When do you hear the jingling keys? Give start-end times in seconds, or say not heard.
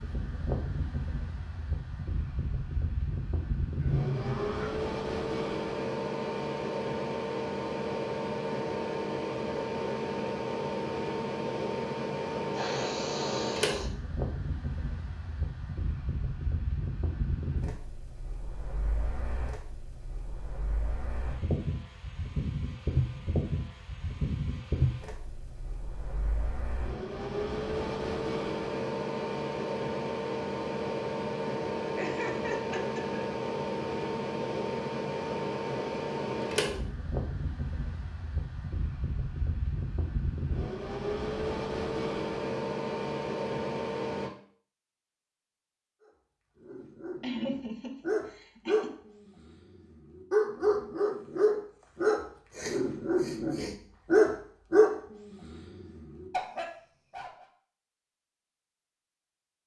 not heard.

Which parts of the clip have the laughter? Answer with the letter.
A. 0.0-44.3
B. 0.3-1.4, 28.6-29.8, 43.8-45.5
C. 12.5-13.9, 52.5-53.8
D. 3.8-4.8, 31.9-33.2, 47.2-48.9
D.